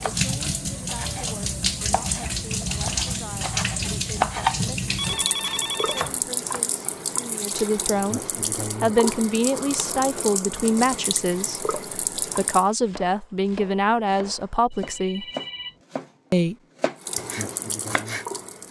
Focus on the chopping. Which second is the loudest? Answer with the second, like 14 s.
4 s.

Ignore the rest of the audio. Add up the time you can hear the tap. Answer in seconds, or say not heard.
14 s.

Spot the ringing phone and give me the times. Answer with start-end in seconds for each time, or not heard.
5.0-6.1, 14.7-15.8.